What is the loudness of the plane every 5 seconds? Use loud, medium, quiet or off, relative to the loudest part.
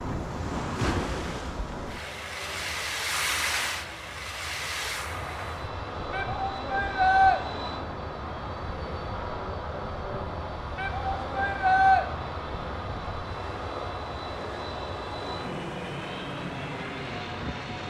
medium, loud, loud, loud.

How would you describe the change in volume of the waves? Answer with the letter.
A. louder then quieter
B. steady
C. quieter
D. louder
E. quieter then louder
C.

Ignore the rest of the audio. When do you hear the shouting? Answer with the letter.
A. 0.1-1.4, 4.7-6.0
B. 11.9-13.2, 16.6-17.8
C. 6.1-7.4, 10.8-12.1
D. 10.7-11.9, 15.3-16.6
C.